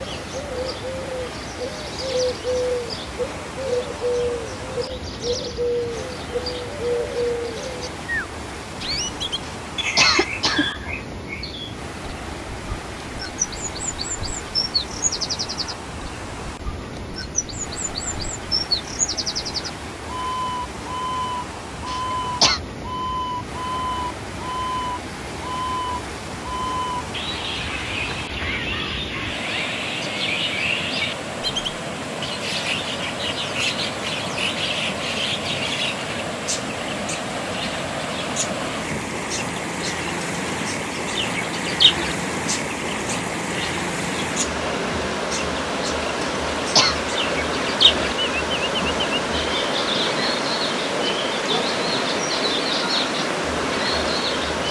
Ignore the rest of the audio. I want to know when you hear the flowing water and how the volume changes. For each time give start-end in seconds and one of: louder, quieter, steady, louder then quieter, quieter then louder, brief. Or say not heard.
0.0-54.6 louder.